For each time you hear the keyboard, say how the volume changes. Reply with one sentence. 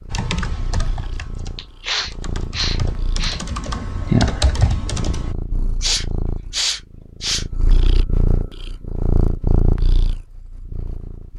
You can hear the keyboard from 0.1 to 5.3 s, getting quieter then louder.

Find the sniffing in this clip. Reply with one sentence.
You can hear the sniffing from 1.6 to 3.4 s and from 5.8 to 7.5 s.